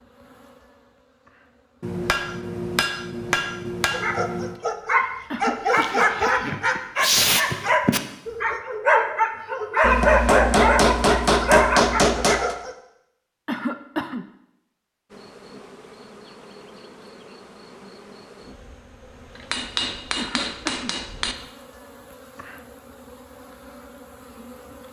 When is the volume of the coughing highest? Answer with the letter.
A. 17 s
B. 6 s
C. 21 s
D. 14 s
D.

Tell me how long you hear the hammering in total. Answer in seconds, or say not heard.
7 s.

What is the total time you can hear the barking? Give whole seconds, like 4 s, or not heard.
9 s.